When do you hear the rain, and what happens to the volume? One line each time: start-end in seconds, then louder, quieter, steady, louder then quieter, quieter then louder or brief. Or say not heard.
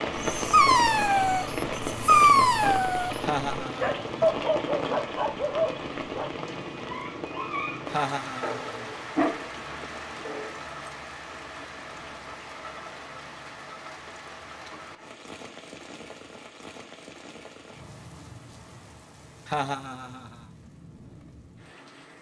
0.0-22.1 quieter.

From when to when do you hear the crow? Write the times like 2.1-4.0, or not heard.
not heard.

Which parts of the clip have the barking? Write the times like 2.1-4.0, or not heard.
0.1-10.6.